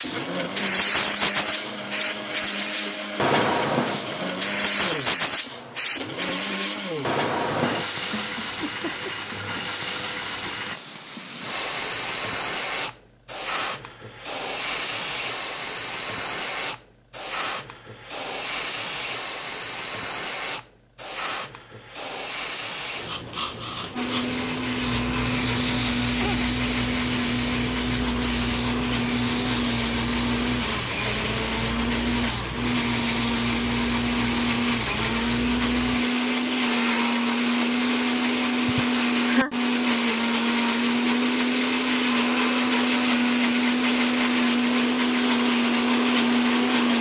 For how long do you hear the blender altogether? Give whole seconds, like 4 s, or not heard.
34 s.